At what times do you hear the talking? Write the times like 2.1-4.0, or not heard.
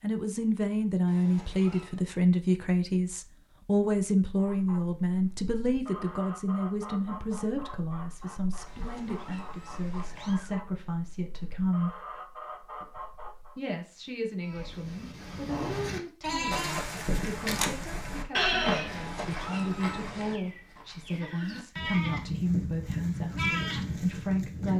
0.0-11.9, 13.6-24.7.